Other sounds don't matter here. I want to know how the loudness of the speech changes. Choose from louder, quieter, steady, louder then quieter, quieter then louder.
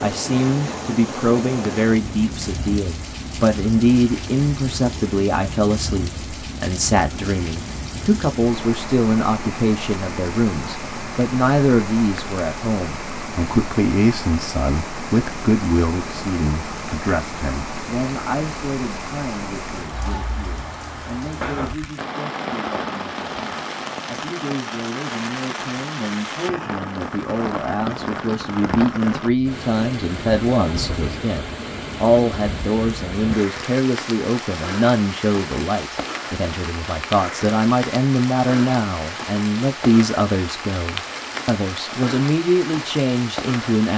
quieter then louder.